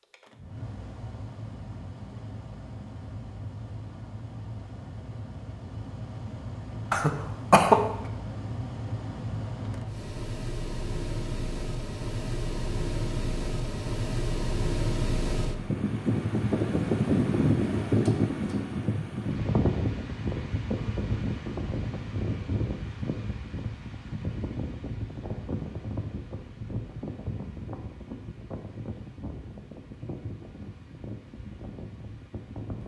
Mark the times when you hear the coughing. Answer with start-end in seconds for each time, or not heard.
6.9-7.8.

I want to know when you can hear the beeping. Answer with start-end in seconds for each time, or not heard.
not heard.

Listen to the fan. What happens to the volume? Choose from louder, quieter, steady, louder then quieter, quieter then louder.
louder then quieter.